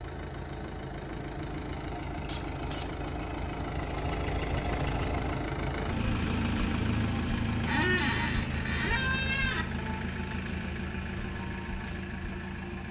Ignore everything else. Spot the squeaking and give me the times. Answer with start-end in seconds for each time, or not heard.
2.2-2.9, 7.7-9.7.